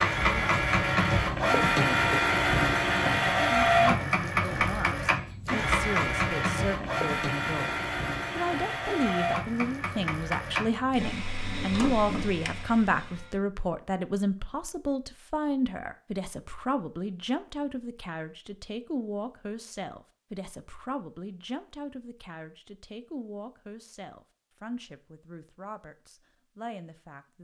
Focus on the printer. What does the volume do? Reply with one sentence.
The volume of the printer goes down.